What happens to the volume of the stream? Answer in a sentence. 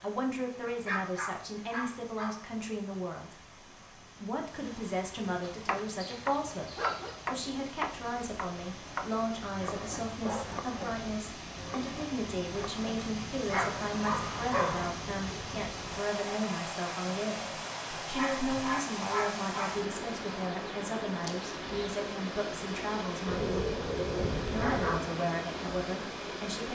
The volume of the stream goes up.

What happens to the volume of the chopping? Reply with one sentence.
The volume of the chopping goes down.